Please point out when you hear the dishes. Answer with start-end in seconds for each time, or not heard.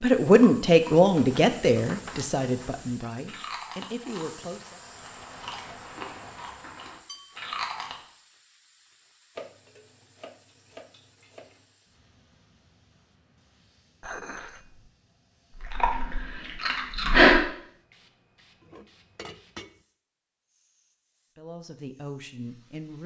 1.1-2.8, 7.0-7.5, 9.3-11.7, 14.0-14.9, 18.6-19.8.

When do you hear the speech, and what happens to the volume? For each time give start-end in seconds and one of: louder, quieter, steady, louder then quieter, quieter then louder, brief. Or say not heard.
0.0-4.8 quieter
21.4-23.0 brief.